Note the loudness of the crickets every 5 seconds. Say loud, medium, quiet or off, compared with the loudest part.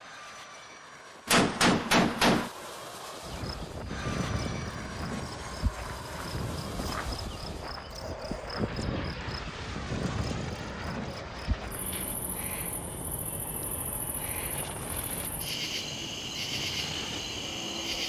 loud, loud, medium, loud.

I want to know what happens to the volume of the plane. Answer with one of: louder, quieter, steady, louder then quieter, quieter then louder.
steady.